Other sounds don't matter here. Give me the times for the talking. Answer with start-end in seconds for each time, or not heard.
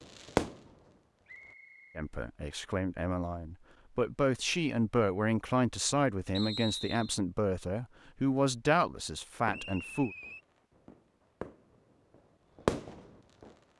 1.9-10.1.